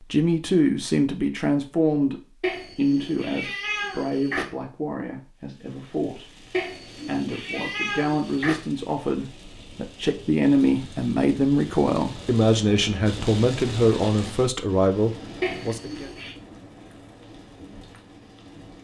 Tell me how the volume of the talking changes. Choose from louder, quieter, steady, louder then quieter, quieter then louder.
quieter then louder.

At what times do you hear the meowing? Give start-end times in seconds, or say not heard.
2.4-4.5, 6.5-8.6, 15.4-16.4.